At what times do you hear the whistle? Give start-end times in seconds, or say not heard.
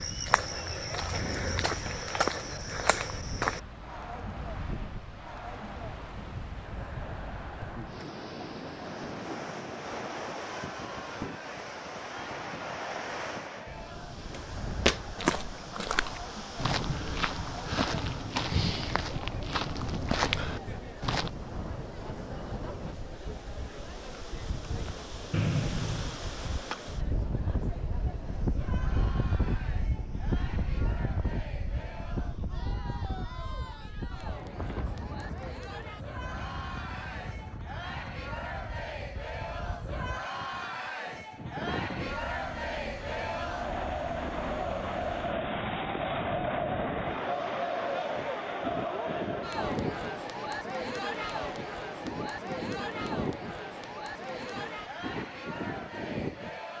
25.3-26.2.